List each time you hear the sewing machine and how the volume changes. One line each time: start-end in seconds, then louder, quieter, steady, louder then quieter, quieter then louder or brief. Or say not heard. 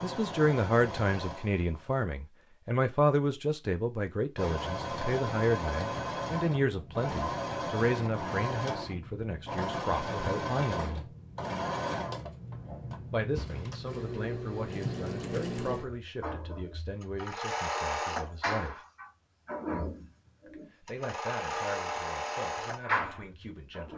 0.0-2.1 brief
4.3-23.9 steady.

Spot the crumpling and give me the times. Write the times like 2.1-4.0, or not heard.
13.3-14.2.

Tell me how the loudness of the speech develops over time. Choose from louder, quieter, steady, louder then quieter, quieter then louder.
quieter.